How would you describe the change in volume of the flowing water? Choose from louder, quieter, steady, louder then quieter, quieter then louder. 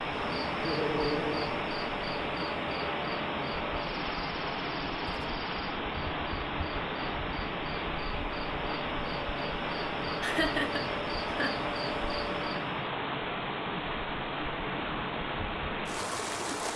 steady.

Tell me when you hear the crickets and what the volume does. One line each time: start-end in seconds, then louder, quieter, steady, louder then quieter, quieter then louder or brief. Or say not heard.
0.0-12.8 quieter then louder.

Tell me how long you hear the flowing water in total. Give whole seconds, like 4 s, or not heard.
17 s.